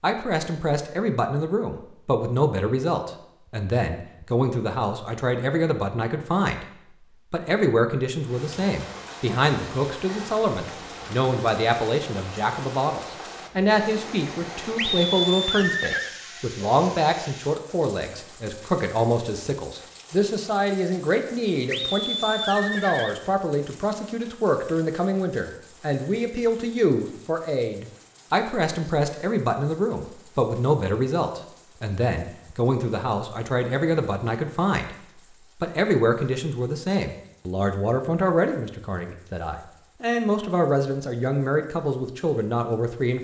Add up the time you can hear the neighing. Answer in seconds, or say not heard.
3 s.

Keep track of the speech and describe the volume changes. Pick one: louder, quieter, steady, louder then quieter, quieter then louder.
steady.